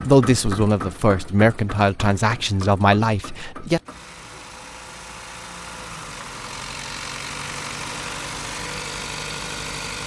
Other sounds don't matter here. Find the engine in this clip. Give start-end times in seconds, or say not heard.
0.0-10.0.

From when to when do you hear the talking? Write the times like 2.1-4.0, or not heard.
0.1-3.8.